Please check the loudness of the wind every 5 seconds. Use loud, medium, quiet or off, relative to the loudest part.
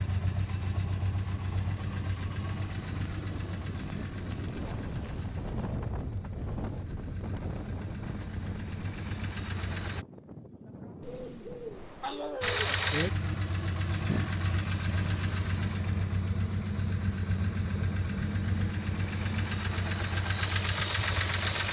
loud, loud, medium, off, off.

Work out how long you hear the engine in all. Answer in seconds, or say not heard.
19 s.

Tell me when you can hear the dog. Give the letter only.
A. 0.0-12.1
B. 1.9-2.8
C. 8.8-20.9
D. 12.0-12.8
D.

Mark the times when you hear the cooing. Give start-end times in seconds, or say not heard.
11.0-12.6.